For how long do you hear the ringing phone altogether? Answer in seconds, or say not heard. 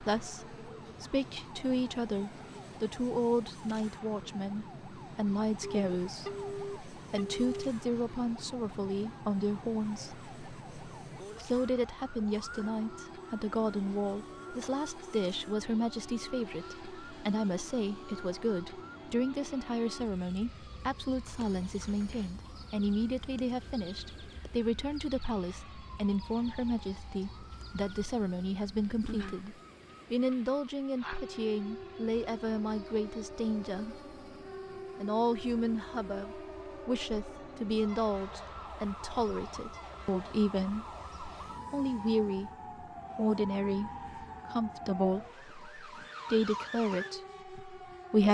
5 s.